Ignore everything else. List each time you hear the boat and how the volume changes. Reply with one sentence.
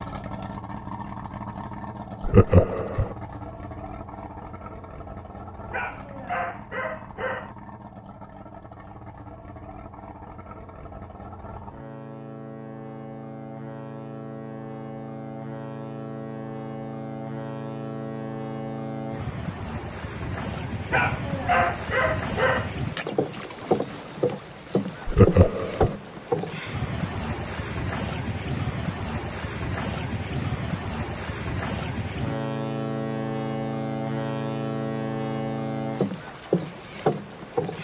You can hear the boat from 0.0 to 37.7 s, getting louder.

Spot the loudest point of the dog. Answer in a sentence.
The loudest moment of the dog is at 22 seconds.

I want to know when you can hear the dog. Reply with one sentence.
The dog can be heard from 5.7 to 7.5 s and from 20.9 to 22.7 s.